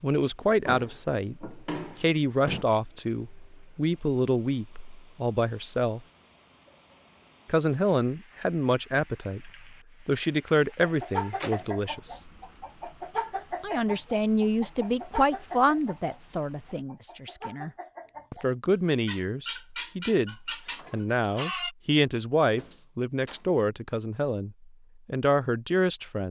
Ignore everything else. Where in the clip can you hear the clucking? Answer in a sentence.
The clucking can be heard from 10.8 to 21.8 s.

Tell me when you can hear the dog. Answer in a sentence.
You can't hear the dog here.